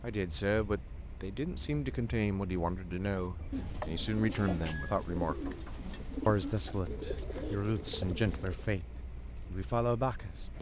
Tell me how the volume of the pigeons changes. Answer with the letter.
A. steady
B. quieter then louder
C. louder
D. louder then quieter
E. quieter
A.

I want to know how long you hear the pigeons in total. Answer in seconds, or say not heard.
6 s.